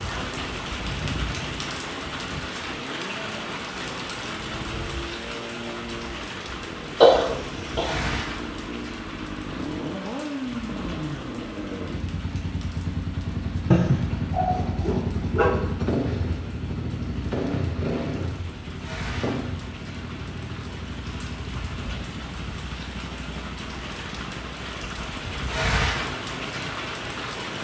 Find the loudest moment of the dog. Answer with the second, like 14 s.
14 s.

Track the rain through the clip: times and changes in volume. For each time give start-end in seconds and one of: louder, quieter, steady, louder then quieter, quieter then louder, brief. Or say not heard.
0.0-27.5 quieter then louder.